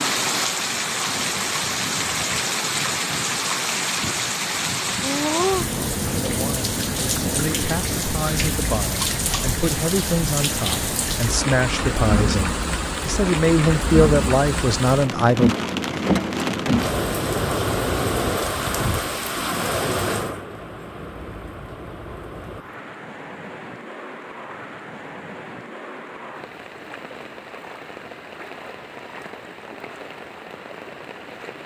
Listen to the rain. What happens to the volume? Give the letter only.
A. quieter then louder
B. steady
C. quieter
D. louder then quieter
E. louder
C.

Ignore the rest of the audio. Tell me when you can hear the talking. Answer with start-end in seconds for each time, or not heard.
6.2-15.6.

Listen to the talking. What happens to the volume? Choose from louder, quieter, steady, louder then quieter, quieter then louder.
louder.